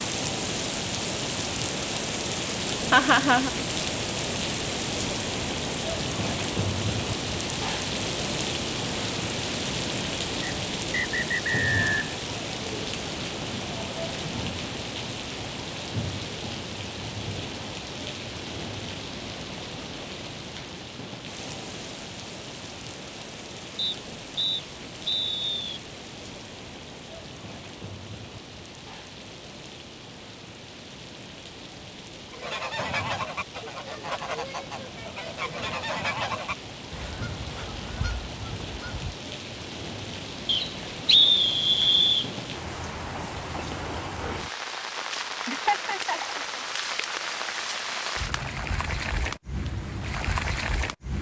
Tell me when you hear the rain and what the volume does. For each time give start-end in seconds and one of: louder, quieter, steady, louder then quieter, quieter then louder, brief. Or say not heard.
0.0-51.1 quieter then louder.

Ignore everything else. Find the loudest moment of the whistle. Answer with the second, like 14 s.
41 s.